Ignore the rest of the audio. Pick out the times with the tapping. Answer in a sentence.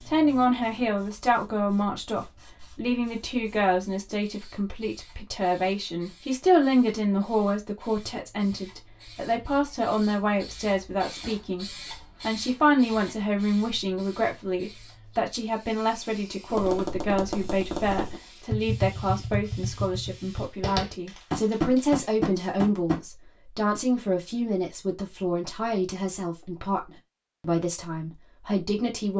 The tapping can be heard from 16.5 to 23.0 s.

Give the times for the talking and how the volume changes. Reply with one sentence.
You can hear the talking from 0.1 to 29.1 s, at a steady volume.